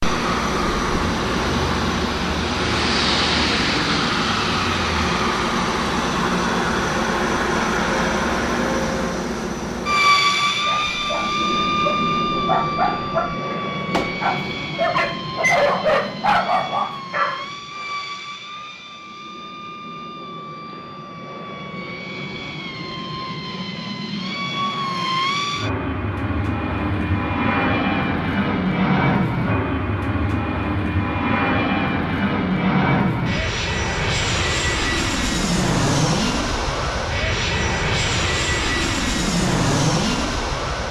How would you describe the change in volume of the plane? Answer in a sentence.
The loudness of the plane goes down, then up.